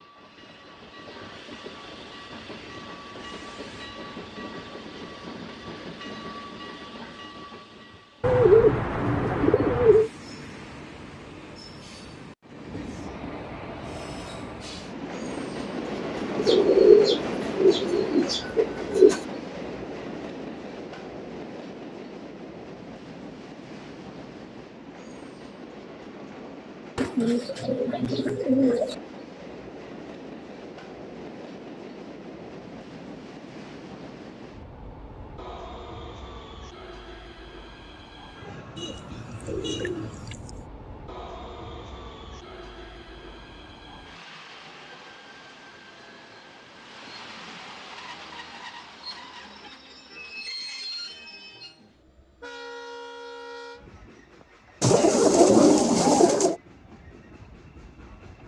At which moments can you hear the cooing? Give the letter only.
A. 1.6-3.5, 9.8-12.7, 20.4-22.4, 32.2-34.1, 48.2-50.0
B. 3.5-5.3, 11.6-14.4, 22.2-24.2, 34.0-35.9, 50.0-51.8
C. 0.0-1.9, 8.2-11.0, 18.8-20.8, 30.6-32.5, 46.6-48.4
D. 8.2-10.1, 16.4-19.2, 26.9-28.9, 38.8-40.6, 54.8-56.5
D.